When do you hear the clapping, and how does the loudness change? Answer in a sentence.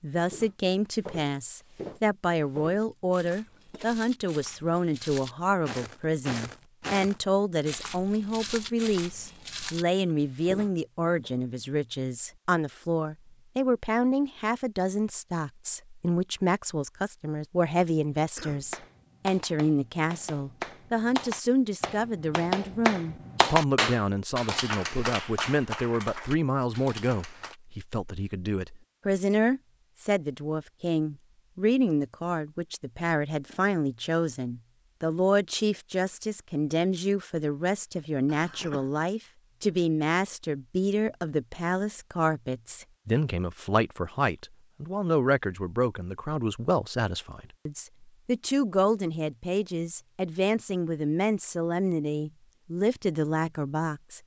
The clapping can be heard from 18.5 to 27.6 s, getting louder then quieter.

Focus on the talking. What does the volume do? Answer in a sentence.
The loudness of the talking stays about the same.